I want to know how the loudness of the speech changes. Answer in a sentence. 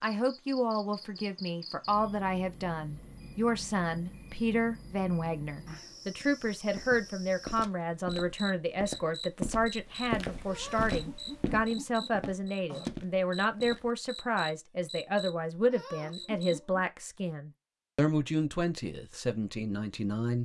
The volume of the speech stays about the same.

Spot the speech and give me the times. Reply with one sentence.
The speech can be heard from 0.0 to 20.3 s.